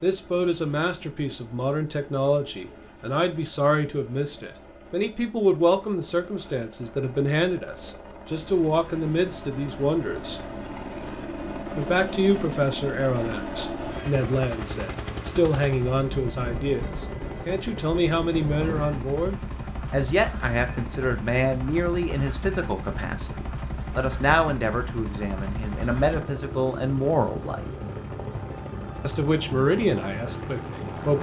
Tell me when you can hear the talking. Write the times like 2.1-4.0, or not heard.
0.0-10.4, 11.8-27.7, 29.1-31.1.